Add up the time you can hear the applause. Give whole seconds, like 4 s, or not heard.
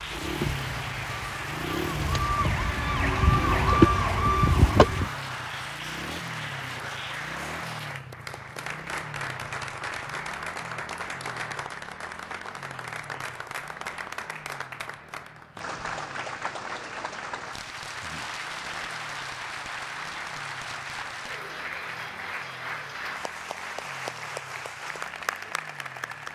26 s.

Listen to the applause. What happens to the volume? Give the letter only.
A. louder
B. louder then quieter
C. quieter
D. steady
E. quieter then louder
D.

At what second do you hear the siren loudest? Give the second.
4 s.